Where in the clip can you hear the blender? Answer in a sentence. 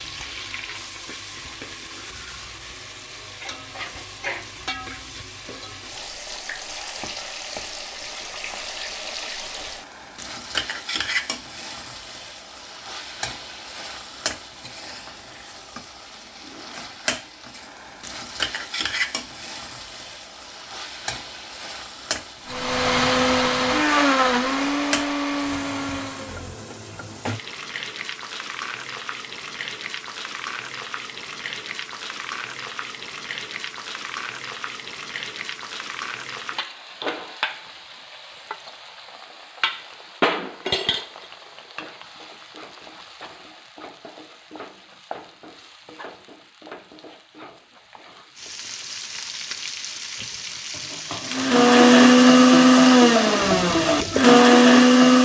The blender can be heard from 22.5 to 26.6 s and from 51.3 to 55.2 s.